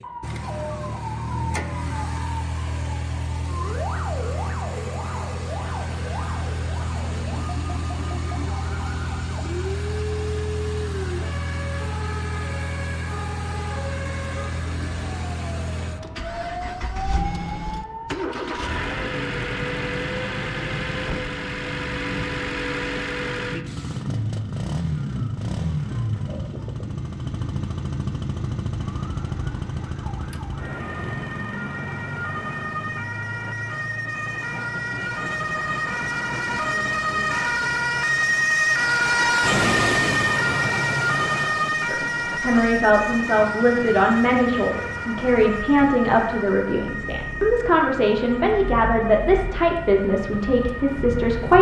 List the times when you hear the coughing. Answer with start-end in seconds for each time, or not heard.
not heard.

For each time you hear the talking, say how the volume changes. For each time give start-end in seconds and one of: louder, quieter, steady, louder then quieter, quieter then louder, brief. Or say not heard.
41.9-51.5 steady.